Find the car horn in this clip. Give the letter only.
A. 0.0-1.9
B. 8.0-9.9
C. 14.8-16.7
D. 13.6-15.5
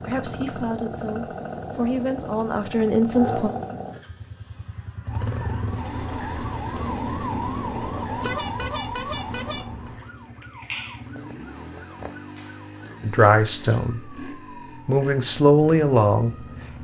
B.